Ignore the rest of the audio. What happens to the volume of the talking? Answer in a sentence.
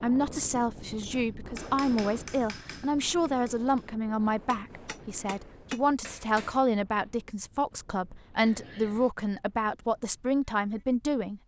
The volume of the talking stays about the same.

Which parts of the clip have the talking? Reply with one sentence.
The talking can be heard from 0.0 to 11.4 s.